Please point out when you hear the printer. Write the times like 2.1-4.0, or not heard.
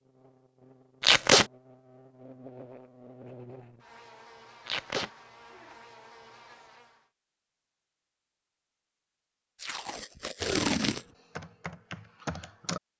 not heard.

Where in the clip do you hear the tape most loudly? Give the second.
1 s.